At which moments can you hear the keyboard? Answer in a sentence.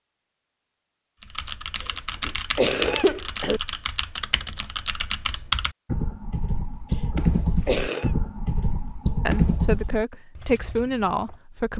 The keyboard can be heard from 1.2 to 11.2 s.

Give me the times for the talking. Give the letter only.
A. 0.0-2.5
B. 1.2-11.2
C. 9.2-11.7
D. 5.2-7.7
C.